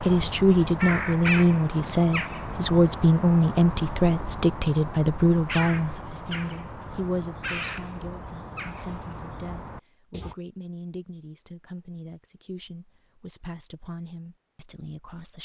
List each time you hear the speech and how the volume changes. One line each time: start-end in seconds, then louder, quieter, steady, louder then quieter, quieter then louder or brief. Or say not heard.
0.0-15.3 quieter.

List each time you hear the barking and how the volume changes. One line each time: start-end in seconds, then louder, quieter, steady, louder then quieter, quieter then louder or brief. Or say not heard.
not heard.